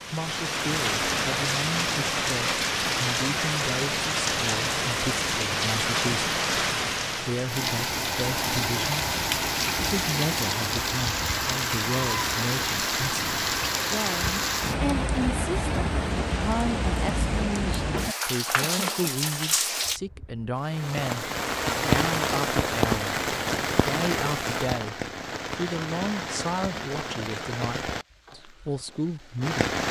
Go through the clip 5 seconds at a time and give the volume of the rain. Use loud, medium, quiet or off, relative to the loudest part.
loud, loud, loud, loud, loud, medium.